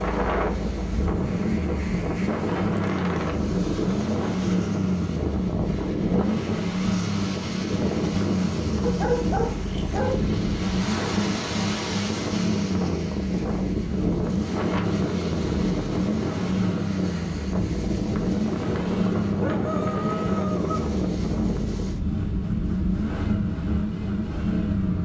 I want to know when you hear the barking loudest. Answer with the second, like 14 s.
9 s.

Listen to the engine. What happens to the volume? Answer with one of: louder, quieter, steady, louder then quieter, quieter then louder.
steady.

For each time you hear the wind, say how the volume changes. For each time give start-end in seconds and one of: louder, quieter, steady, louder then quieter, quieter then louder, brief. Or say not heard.
0.0-24.9 steady.